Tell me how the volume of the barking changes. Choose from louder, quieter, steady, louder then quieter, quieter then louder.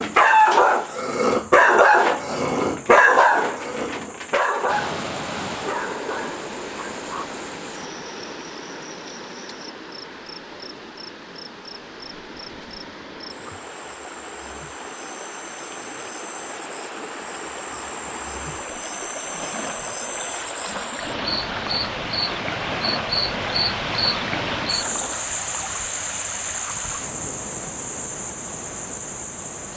quieter.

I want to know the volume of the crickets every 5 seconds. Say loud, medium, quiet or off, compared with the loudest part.
quiet, quiet, quiet, medium, loud, loud.